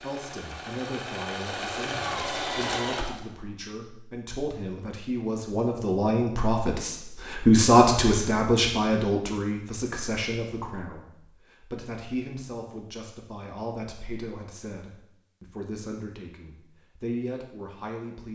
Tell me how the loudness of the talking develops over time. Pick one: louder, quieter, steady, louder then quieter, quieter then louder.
louder then quieter.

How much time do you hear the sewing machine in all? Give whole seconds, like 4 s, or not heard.
3 s.